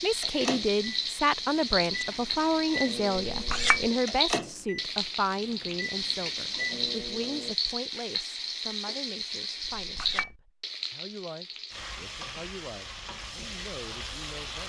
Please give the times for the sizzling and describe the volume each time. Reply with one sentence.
The sizzling can be heard from 0.0 to 14.6 s, getting quieter.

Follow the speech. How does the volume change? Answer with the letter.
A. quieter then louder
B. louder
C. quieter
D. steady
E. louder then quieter
C.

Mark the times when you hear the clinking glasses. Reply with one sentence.
You can hear the clinking glasses from 3.3 to 3.9 s and from 9.6 to 10.3 s.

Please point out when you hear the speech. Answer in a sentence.
The speech can be heard from 0.0 to 14.6 s.